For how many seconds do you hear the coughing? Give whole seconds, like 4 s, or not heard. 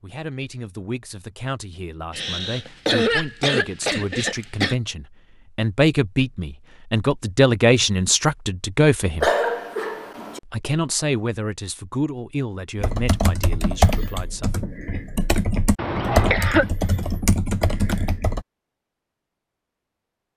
5 s.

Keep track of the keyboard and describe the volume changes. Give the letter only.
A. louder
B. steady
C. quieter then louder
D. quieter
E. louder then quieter
C.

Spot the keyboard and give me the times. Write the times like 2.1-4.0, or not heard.
12.8-18.4.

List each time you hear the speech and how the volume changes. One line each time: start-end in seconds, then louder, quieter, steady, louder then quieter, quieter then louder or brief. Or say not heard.
0.0-9.3 louder
10.4-14.6 quieter.